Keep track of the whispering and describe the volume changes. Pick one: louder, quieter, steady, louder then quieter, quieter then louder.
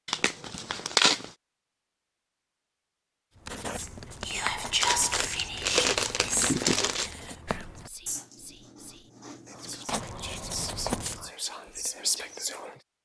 quieter then louder.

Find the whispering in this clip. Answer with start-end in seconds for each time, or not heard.
3.8-12.8.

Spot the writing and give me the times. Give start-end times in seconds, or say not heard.
3.4-11.3.